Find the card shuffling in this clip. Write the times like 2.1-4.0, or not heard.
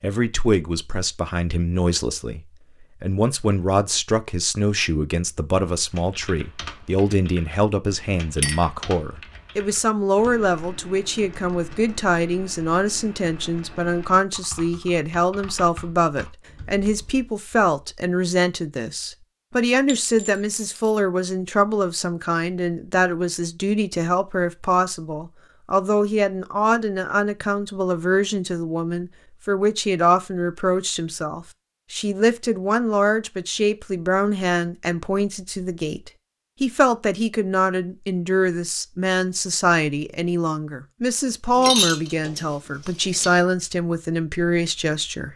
not heard.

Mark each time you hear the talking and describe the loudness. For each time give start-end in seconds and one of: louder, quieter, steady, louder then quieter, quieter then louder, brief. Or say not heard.
0.0-2.4 brief
3.0-45.3 steady.